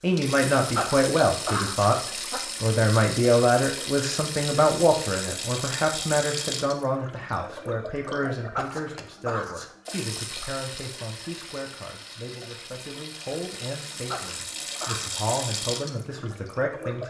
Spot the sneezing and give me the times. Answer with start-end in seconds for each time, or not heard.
0.8-2.4, 8.6-9.7, 14.1-15.2.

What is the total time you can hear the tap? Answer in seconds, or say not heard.
17 s.